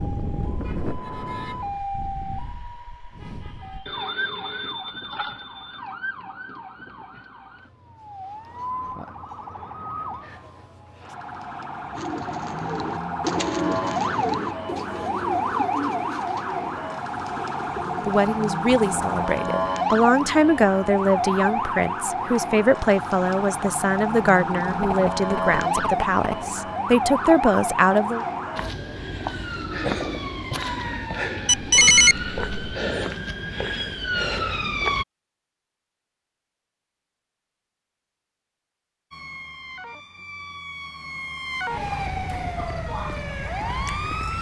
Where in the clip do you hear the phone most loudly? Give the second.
32 s.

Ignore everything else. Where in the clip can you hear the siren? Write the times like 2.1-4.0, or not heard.
0.0-35.0, 39.1-44.3.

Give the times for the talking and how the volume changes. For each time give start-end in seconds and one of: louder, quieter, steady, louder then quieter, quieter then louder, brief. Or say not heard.
17.9-28.2 steady.